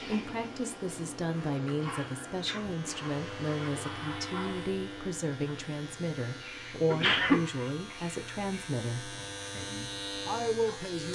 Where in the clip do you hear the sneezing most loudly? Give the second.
7 s.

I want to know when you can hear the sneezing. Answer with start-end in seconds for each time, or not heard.
2.2-2.8, 6.8-7.5.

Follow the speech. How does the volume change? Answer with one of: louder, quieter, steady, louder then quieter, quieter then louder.
steady.